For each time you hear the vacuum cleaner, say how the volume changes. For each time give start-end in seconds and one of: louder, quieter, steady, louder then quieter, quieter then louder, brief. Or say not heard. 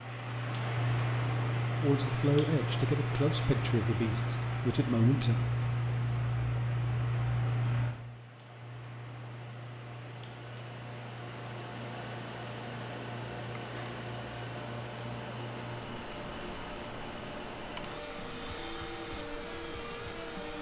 0.0-20.5 louder.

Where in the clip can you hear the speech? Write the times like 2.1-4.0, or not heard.
1.8-5.4.